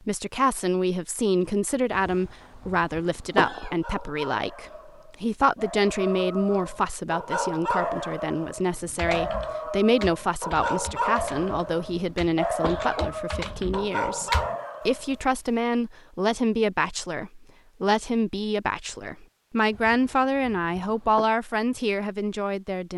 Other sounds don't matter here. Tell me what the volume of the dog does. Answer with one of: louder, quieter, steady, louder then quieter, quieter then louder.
louder.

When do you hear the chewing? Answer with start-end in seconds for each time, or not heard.
not heard.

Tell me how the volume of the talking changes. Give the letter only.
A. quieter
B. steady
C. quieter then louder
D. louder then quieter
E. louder
B.